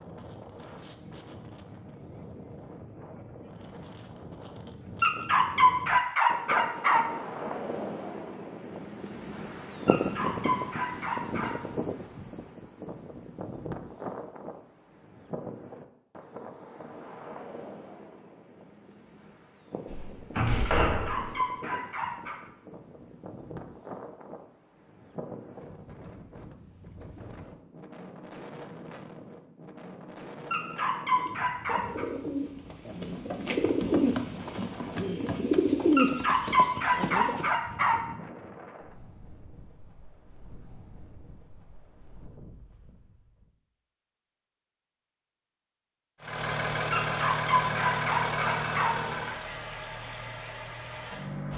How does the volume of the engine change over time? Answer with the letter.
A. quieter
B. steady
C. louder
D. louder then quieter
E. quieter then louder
A.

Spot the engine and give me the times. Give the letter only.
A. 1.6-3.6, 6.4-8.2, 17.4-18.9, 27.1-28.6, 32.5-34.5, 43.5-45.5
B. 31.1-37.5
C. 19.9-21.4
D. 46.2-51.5
D.